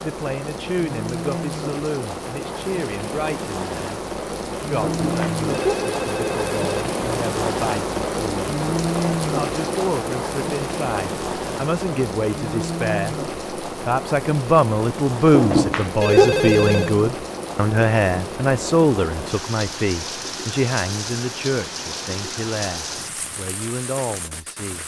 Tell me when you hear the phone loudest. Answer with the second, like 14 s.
16 s.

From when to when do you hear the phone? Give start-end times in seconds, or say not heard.
4.8-6.8, 15.3-16.9.